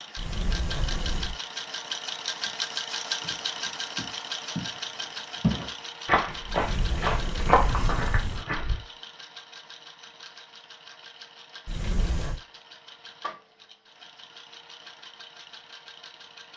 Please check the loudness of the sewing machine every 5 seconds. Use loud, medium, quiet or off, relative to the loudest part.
loud, medium, quiet, quiet.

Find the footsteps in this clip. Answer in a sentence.
You can hear the footsteps from 3.2 to 4.8 s and from 5.4 to 8.8 s.